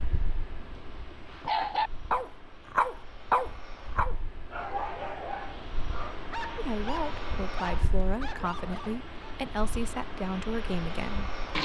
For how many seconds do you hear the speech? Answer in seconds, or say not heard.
5 s.